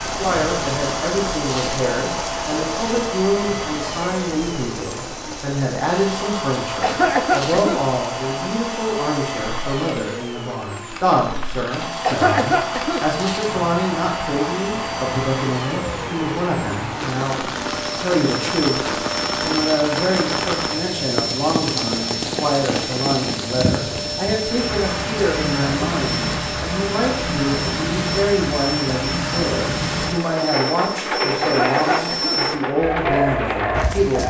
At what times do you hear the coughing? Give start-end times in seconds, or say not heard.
6.8-8.0, 12.0-13.1, 31.4-32.5.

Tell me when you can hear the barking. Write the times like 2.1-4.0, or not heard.
32.8-34.2.